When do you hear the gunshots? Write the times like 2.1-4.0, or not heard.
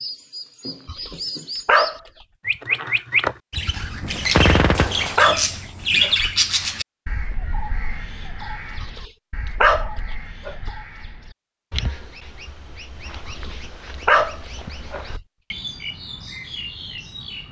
4.2-5.2.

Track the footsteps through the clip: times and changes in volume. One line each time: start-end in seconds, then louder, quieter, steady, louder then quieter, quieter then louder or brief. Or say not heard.
not heard.